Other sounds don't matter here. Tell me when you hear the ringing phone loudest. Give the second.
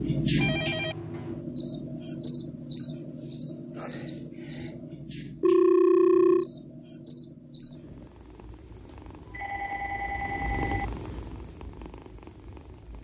6 s.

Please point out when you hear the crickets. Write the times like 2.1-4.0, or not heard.
0.0-8.1.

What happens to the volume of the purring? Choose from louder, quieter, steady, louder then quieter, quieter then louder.
louder then quieter.